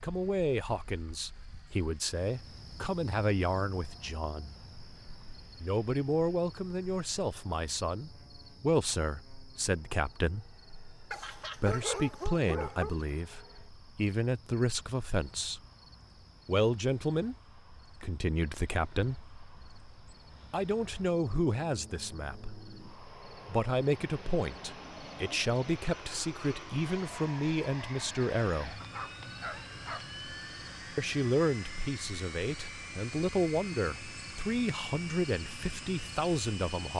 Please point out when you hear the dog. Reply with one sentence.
You can hear the dog from 11.1 to 12.9 s and from 28.8 to 30.1 s.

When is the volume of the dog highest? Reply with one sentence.
The volume of the dog peaks at 12 seconds.